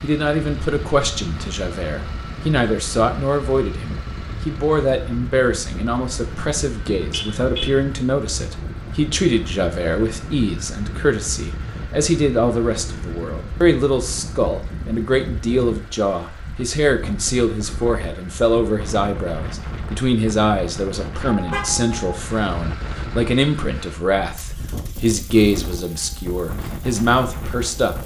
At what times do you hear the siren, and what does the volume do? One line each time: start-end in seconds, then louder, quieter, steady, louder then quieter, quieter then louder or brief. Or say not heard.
not heard.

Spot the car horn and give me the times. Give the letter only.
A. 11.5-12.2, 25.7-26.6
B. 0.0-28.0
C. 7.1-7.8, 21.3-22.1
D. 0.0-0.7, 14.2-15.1
C.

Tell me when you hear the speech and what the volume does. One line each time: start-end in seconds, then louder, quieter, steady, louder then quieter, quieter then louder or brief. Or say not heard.
0.0-28.0 steady.